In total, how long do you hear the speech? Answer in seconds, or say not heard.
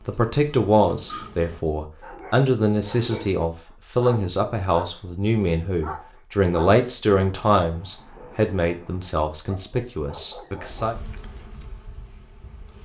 11 s.